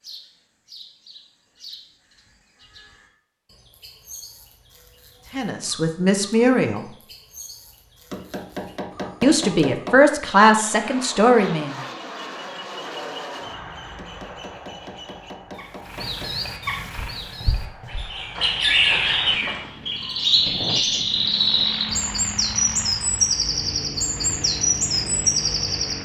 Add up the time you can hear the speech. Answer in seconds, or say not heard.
4 s.